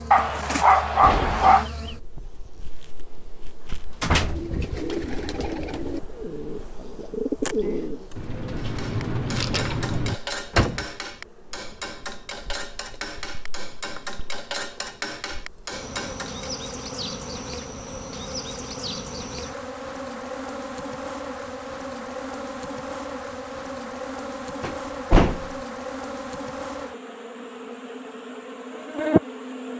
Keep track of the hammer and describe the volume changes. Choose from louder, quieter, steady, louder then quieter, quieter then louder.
steady.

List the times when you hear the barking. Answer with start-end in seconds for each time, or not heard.
0.1-1.6.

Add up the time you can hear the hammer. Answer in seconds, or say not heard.
8 s.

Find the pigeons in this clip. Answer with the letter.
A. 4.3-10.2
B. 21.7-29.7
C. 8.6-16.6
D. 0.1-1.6
A.